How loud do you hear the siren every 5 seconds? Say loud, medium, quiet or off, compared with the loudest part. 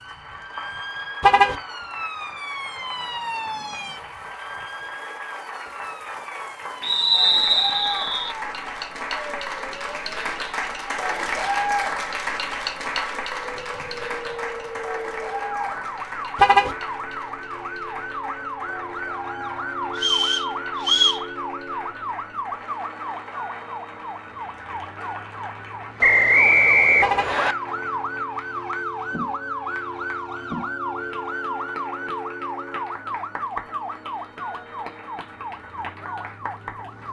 loud, medium, medium, loud, loud, loud, loud, medium.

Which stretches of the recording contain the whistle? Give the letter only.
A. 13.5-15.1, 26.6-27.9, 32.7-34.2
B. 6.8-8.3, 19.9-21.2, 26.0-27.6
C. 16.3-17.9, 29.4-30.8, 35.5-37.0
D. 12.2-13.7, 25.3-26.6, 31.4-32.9
B.